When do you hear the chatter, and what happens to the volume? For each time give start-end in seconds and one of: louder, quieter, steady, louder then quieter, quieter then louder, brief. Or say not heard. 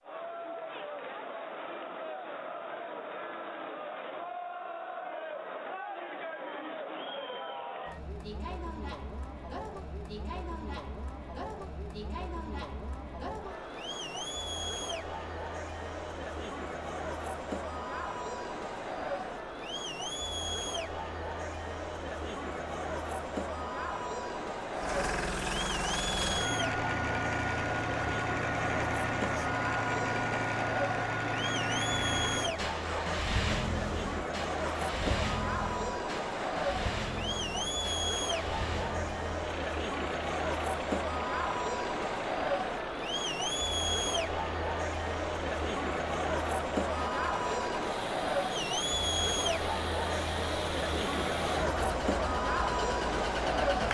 0.0-53.8 louder.